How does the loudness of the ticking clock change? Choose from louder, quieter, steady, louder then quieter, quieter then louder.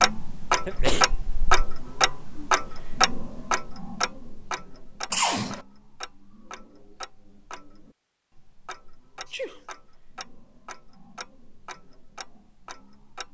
quieter.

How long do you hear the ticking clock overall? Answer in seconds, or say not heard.
13 s.